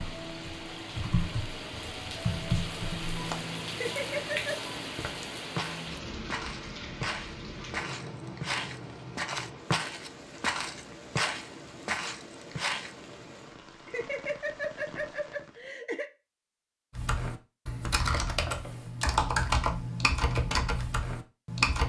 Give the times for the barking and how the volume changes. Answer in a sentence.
The barking can't be heard in this clip.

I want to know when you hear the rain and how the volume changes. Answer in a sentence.
You can hear the rain from 0.0 to 15.8 s, getting quieter.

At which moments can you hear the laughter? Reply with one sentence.
You can hear the laughter from 3.7 to 4.5 s and from 13.8 to 16.1 s.